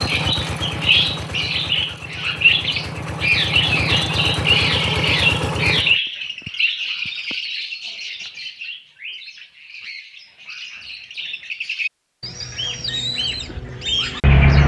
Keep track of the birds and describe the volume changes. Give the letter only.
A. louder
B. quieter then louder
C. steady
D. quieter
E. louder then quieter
B.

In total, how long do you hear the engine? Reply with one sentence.
You can hear the engine for 6 seconds altogether.